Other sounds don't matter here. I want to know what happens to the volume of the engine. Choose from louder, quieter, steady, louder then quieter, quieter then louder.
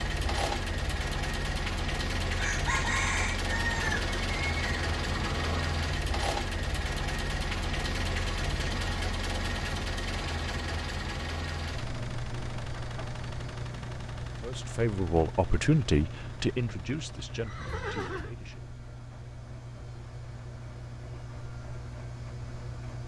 quieter.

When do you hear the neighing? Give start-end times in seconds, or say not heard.
3.7-5.8, 17.4-18.4.